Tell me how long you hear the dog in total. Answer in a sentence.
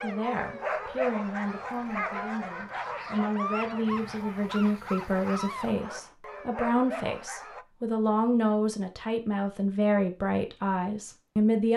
The dog can be heard for 8 seconds in total.